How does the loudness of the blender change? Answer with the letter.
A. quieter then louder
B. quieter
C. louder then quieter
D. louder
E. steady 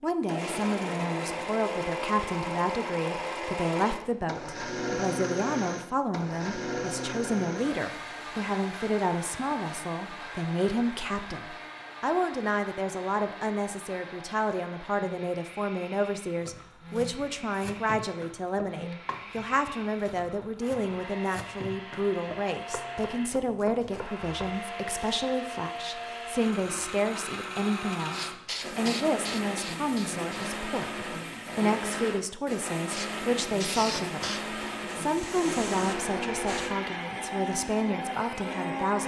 A.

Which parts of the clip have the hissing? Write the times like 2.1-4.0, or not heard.
28.1-30.6, 32.9-36.8.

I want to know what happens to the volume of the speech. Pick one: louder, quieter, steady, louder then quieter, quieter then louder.
steady.